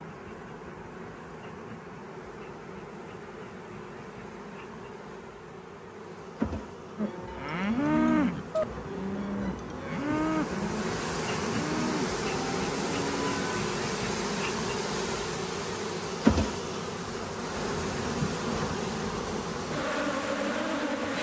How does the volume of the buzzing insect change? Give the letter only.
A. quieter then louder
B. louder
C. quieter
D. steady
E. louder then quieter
B.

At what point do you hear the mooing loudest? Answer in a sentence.
The volume of the mooing peaks at 8 seconds.